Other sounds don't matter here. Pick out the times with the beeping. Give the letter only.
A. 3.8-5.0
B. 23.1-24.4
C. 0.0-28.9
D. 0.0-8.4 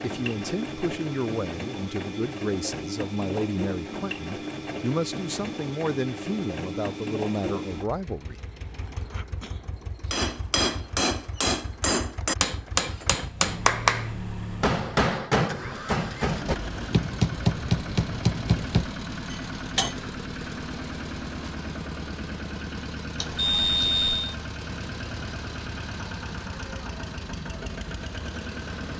B.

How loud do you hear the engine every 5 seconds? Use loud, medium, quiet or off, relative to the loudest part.
loud, loud, medium, loud, loud, loud.